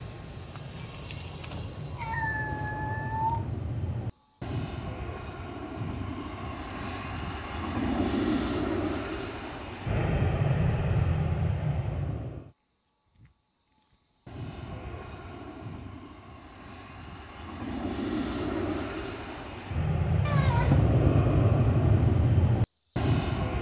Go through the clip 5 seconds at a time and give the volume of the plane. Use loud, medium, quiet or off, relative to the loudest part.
quiet, medium, medium, medium, loud.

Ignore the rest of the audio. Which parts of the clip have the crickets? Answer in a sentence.
You can hear the crickets from 0.0 to 23.5 s.